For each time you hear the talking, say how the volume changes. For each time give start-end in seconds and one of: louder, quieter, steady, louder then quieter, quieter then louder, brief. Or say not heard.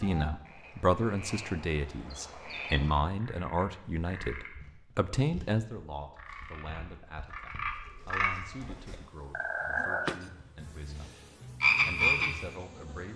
0.0-11.2 quieter
11.8-13.1 brief.